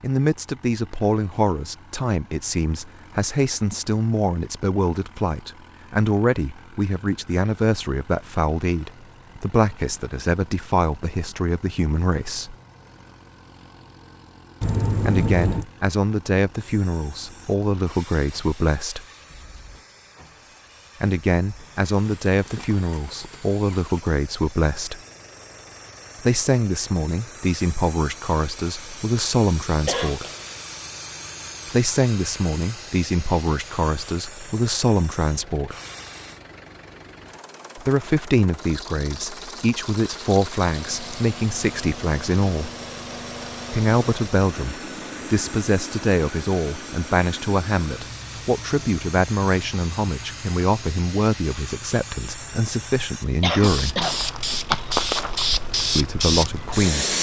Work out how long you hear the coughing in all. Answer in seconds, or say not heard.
3 s.